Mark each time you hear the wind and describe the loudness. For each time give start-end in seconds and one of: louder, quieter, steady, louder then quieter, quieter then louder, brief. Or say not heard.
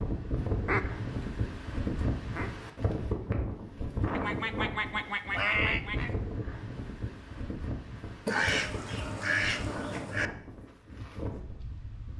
0.0-12.1 quieter.